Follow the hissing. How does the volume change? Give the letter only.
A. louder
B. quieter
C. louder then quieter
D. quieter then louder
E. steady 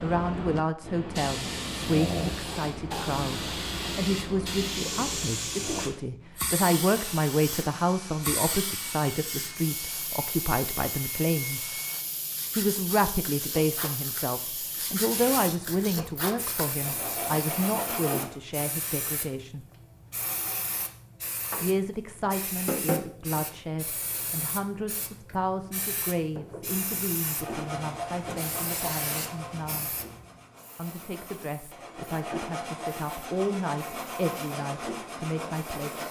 B.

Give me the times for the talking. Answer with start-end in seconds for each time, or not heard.
0.0-11.8, 12.6-19.6, 21.6-29.9, 30.8-36.0.